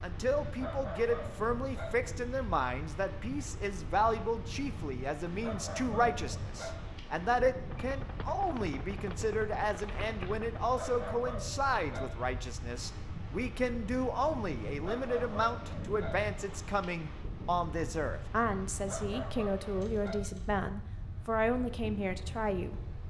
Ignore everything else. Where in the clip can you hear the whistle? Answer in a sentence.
The whistle can't be heard in this clip.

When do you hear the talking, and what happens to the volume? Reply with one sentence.
The talking can be heard from 0.0 to 22.8 s, at a steady volume.